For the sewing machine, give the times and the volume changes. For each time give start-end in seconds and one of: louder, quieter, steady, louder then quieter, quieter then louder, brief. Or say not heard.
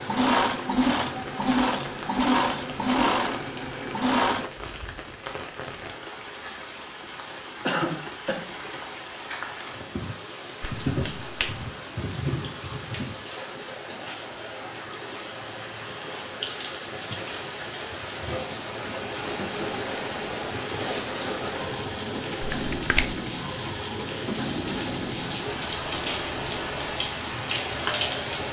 0.0-4.5 quieter
18.6-28.4 steady.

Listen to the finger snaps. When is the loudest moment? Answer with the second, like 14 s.
23 s.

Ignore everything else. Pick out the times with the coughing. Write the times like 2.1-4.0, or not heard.
7.7-8.4.